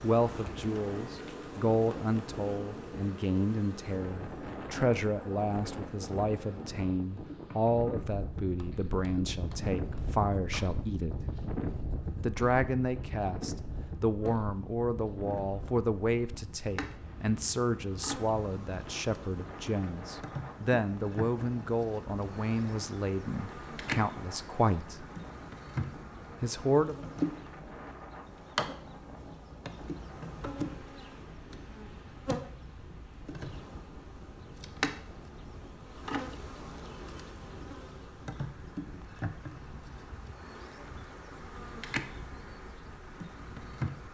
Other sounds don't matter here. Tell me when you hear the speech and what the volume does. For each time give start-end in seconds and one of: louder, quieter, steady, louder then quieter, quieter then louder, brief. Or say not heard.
0.0-11.3 steady
12.2-25.1 steady
26.4-27.0 brief.